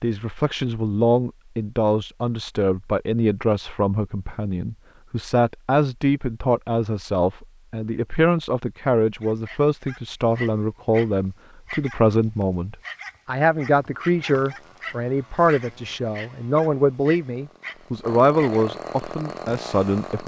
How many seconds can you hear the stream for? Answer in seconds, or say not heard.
not heard.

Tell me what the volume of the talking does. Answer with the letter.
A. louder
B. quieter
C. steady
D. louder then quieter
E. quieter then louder
C.